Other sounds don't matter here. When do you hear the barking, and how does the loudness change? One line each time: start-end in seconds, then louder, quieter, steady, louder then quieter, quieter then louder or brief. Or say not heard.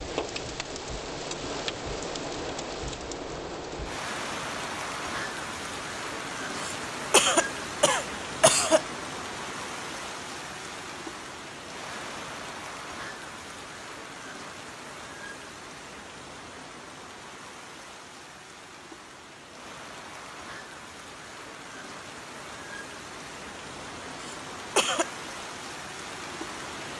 not heard.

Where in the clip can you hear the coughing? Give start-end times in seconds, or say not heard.
6.6-8.8, 24.2-25.1.